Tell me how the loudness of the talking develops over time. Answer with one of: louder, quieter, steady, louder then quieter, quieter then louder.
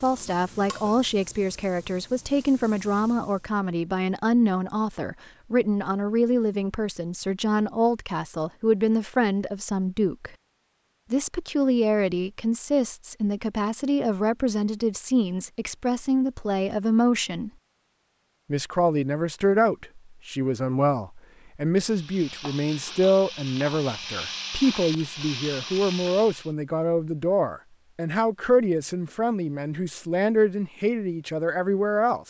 steady.